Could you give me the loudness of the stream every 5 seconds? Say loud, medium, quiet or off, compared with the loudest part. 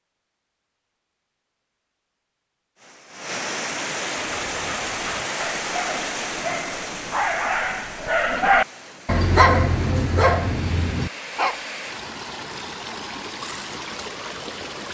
loud, loud, medium.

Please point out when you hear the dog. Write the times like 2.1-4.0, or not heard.
4.2-11.6.